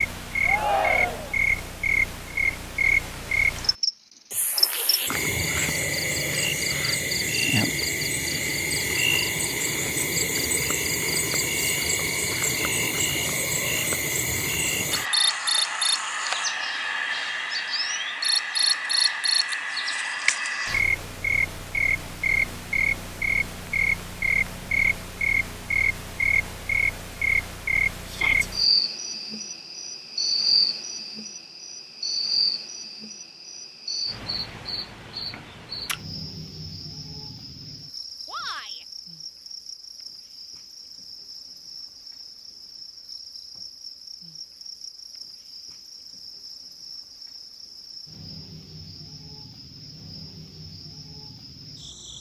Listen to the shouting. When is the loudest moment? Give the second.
1 s.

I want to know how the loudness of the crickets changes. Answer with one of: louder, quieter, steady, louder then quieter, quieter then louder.
quieter.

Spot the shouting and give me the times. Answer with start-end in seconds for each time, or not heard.
0.5-1.4, 28.1-28.5, 38.2-38.9.